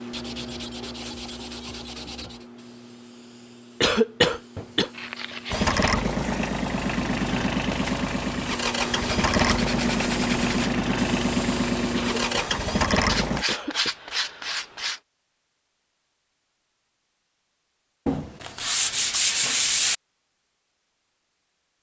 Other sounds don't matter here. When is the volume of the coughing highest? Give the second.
4 s.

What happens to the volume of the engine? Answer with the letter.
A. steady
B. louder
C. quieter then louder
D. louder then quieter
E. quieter
A.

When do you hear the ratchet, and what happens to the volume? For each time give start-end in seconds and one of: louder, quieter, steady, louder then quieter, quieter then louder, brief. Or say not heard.
not heard.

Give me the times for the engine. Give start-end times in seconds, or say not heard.
5.5-13.4.